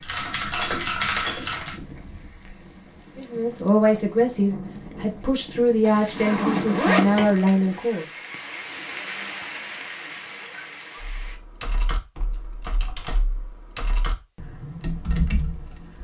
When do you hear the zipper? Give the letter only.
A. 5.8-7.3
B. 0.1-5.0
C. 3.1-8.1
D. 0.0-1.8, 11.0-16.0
A.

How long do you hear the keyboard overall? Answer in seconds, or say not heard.
7 s.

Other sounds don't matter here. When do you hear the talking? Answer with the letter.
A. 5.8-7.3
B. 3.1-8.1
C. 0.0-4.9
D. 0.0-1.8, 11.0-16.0
B.